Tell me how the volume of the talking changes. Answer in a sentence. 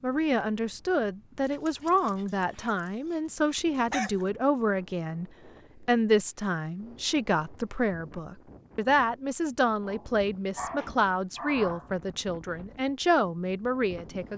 The loudness of the talking stays about the same.